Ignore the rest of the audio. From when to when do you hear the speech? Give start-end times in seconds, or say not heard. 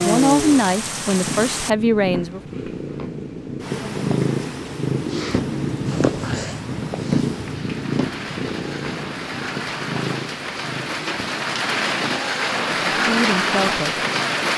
0.0-2.4, 12.9-14.1.